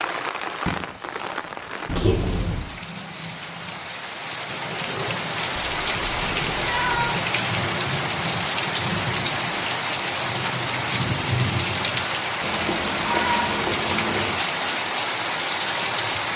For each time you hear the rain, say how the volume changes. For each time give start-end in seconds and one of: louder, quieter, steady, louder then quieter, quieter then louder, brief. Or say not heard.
0.0-16.3 louder.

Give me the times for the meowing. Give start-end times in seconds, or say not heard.
1.9-2.8, 5.5-7.1, 12.4-14.4.